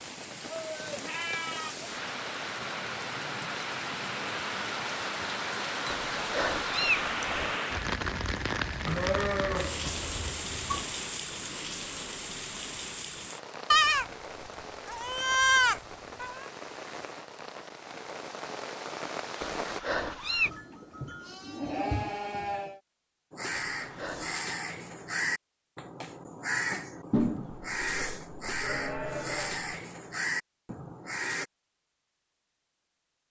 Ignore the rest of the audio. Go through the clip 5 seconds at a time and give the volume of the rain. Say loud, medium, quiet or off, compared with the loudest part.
loud, loud, medium, medium, off, off, off.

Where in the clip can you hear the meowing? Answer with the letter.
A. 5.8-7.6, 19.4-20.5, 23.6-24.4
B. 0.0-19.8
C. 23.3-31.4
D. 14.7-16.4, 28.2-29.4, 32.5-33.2
A.